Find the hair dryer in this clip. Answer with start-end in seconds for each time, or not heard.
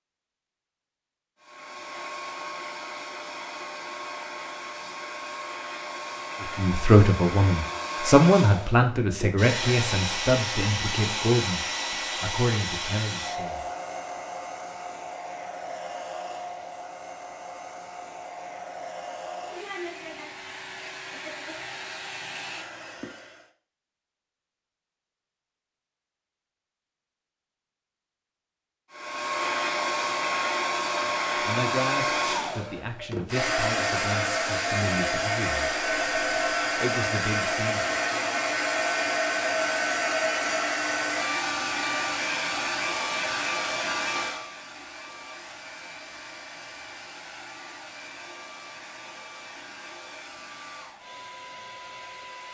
1.4-23.5, 28.9-52.4.